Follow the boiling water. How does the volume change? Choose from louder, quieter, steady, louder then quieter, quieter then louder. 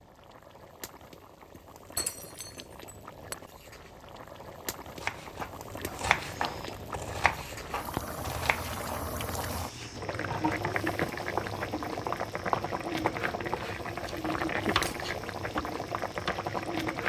louder.